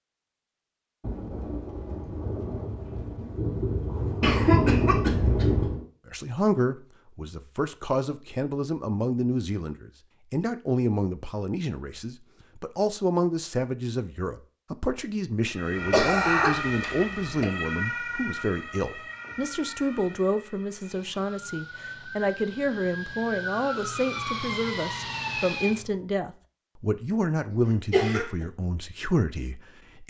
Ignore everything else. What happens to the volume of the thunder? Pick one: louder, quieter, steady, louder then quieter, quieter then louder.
louder.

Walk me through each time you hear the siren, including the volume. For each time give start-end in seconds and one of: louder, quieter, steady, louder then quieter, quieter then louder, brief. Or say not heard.
15.5-25.9 quieter then louder.